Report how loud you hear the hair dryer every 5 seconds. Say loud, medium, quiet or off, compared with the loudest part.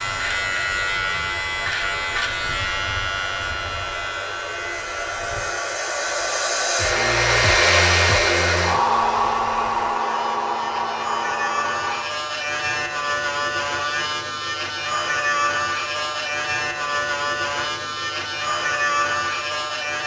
quiet, loud, medium, off.